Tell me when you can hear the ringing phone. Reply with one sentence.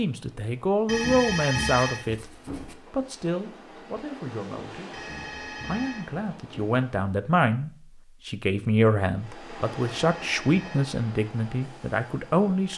The ringing phone can be heard from 0.8 to 2.8 s, from 4.9 to 6.8 s and from 9.8 to 10.9 s.